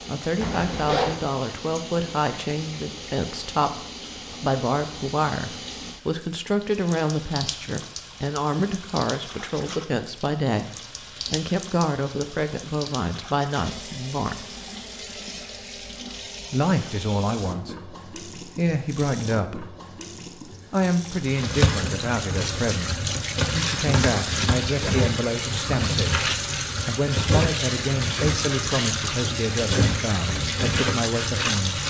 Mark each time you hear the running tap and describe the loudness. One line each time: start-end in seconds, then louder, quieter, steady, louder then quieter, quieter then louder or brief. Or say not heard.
0.0-31.8 louder.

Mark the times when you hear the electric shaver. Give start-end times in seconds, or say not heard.
not heard.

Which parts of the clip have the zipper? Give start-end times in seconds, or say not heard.
0.4-1.1.